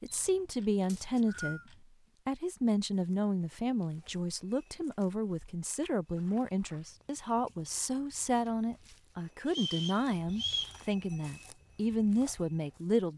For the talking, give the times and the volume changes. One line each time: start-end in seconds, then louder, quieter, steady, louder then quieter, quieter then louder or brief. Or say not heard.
0.0-1.6 brief
2.2-13.1 steady.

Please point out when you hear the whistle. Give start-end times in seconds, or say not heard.
0.8-1.6, 9.4-10.8.